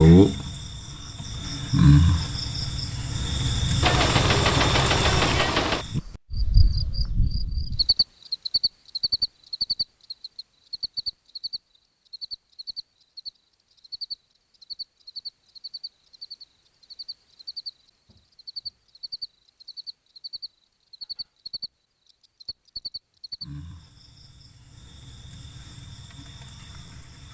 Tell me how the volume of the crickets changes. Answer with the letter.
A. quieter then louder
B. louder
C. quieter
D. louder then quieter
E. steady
C.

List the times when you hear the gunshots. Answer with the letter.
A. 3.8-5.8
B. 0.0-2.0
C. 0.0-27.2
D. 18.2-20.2
A.